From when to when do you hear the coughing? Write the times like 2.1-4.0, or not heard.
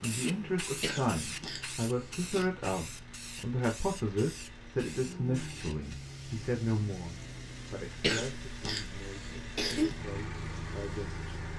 0.8-2.5, 8.0-9.9.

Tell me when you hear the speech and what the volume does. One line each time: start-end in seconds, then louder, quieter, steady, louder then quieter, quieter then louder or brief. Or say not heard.
0.0-11.5 quieter.